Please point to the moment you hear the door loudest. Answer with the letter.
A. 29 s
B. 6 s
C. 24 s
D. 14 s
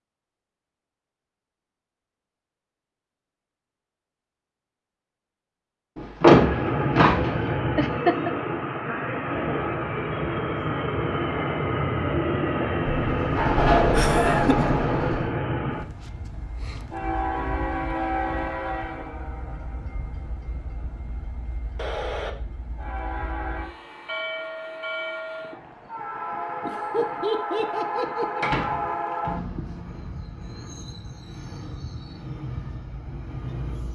B.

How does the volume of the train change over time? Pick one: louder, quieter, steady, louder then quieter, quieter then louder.
quieter.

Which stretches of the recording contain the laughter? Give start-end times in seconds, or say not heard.
7.8-8.3, 13.9-14.8, 26.6-28.6.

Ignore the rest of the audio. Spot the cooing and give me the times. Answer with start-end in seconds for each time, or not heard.
not heard.